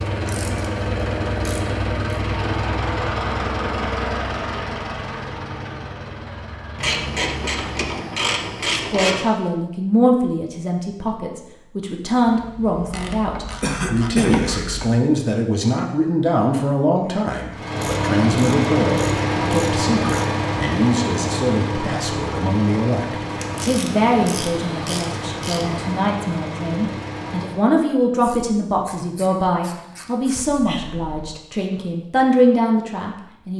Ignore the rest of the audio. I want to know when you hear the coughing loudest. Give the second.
14 s.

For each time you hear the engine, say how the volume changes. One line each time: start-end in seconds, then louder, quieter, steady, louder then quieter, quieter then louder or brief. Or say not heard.
0.0-8.0 quieter
17.5-27.6 quieter.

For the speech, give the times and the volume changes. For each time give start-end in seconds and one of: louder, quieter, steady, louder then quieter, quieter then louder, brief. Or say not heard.
8.7-33.5 steady.